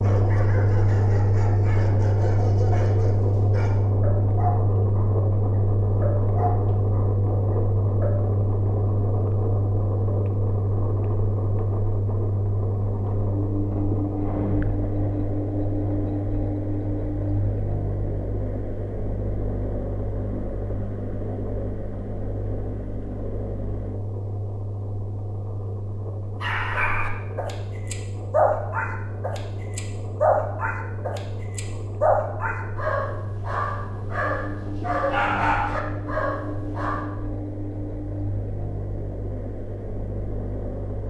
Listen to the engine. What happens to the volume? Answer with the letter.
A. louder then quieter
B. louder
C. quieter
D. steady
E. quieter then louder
C.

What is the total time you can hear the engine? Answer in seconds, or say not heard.
41 s.